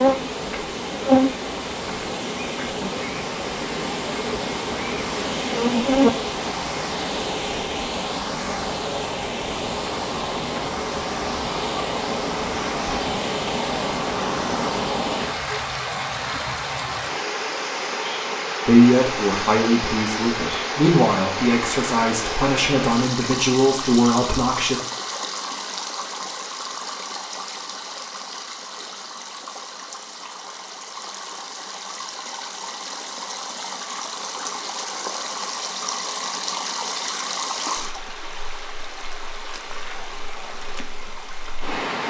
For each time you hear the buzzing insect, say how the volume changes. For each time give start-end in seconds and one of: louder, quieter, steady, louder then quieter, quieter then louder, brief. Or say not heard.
0.0-6.3 quieter then louder.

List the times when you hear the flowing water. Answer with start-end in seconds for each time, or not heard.
0.0-42.0.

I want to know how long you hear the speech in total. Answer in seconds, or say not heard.
6 s.